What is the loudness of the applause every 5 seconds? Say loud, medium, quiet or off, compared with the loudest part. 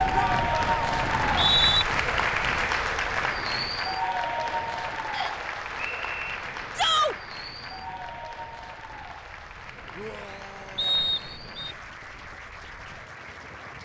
loud, medium, quiet.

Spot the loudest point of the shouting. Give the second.
7 s.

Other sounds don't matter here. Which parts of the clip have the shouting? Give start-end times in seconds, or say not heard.
0.1-1.0, 6.8-7.2, 9.9-11.2.